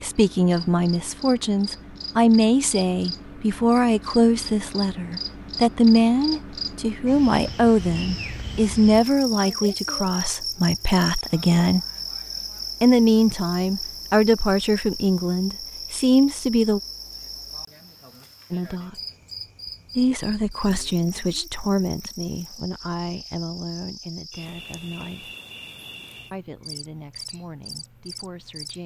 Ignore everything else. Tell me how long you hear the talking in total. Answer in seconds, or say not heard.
24 s.